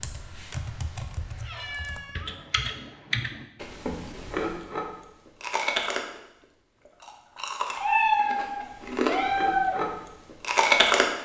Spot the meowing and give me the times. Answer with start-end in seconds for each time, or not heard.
1.2-2.8, 7.8-9.8.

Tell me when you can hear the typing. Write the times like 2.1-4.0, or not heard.
0.0-3.5.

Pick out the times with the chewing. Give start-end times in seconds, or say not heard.
3.6-11.1.